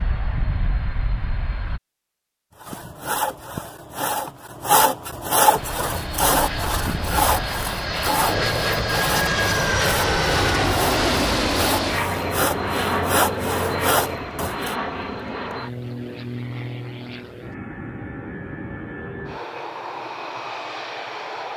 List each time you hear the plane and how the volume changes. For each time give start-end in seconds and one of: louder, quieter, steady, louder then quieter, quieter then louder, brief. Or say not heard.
0.0-1.8 brief
5.5-21.5 louder then quieter.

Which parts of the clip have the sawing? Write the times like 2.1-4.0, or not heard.
2.6-14.8.